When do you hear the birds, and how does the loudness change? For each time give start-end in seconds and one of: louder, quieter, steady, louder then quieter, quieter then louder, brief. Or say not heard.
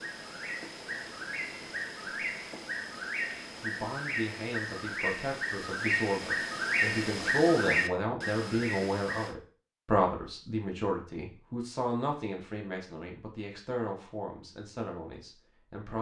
0.0-9.3 louder.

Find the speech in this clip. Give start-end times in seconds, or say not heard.
3.6-15.9.